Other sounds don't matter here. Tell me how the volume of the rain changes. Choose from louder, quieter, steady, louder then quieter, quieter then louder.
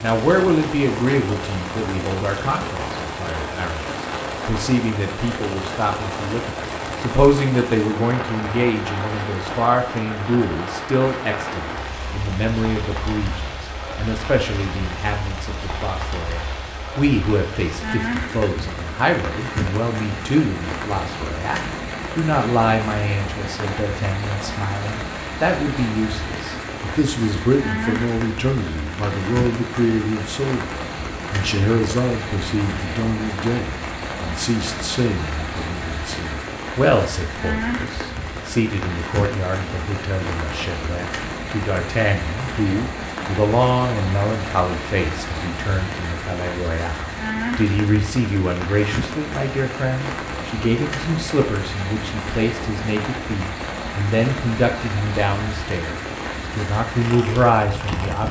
steady.